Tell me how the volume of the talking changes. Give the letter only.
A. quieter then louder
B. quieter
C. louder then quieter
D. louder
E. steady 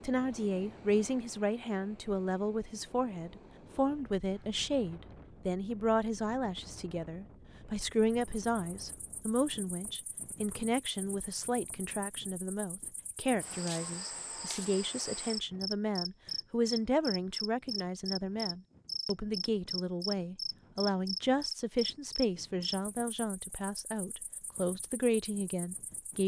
E.